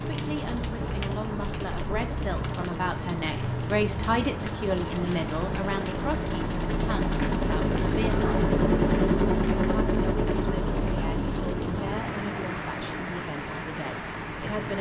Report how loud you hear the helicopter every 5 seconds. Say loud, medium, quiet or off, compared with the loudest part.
quiet, loud, medium.